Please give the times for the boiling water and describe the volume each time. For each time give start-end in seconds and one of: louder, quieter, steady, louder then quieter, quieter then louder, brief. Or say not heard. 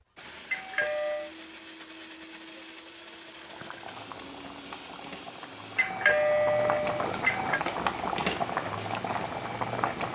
3.2-10.1 louder.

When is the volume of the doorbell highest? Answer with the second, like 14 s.
6 s.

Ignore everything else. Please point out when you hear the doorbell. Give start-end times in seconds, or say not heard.
0.5-1.3, 5.8-7.6.